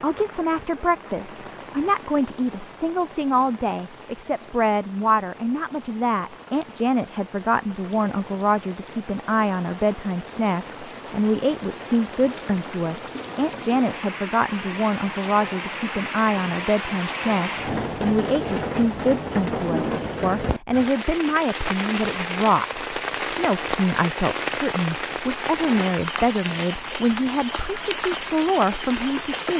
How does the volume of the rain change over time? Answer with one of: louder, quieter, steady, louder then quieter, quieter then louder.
louder.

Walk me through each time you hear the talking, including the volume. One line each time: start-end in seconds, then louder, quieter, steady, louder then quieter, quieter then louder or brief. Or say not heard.
0.0-29.5 steady.